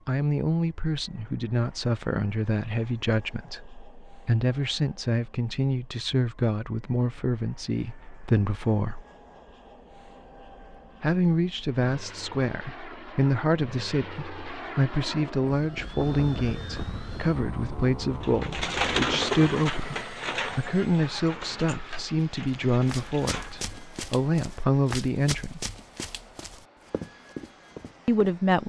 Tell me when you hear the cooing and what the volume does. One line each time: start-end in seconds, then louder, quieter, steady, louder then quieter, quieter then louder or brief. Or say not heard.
18.2-23.9 quieter.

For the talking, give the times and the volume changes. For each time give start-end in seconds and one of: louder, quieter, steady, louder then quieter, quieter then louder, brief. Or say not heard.
0.1-9.0 steady
11.0-25.7 steady
28.1-28.6 brief.